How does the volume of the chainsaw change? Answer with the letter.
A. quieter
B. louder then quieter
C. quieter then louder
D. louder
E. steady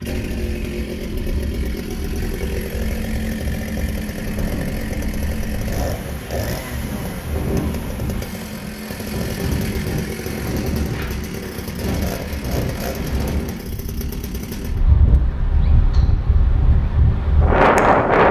A.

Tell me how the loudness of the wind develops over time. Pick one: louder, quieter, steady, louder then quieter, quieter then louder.
louder.